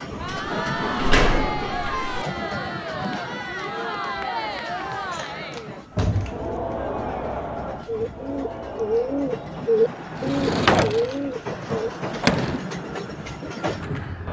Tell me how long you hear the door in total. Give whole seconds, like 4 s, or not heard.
5 s.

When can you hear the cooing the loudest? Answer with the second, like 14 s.
10 s.